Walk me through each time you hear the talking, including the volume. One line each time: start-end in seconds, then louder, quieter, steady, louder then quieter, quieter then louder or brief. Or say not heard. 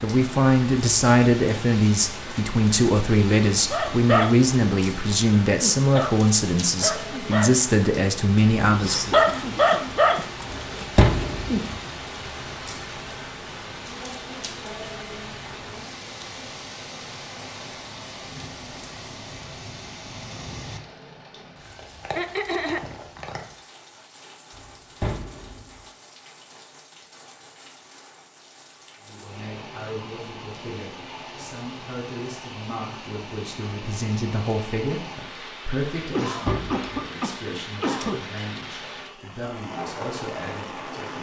0.0-9.2 steady
29.1-41.1 louder then quieter.